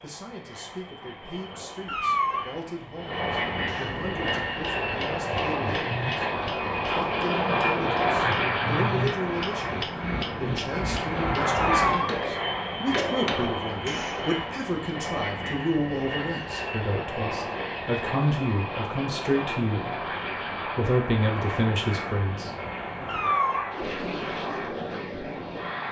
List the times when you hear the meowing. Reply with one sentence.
You can hear the meowing from 1.9 to 2.5 s, from 11.5 to 12.1 s and from 23.1 to 23.6 s.